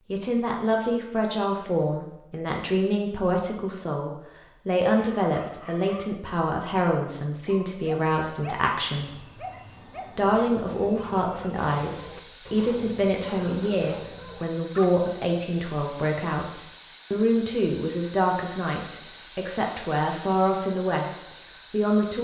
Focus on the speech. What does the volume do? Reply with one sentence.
The loudness of the speech stays about the same.